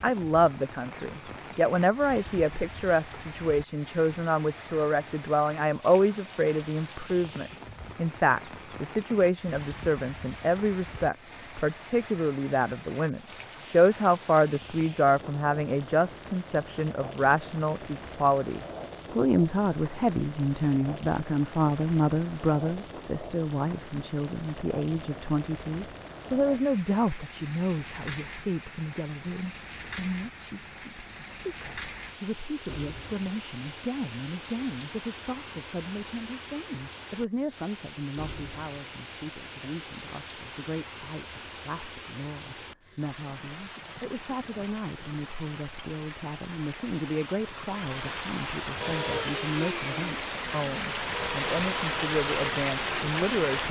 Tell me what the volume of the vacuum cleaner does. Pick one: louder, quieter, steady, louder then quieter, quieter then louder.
quieter.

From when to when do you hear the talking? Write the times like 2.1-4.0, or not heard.
0.0-53.6.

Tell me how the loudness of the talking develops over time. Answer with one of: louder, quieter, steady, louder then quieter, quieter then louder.
quieter.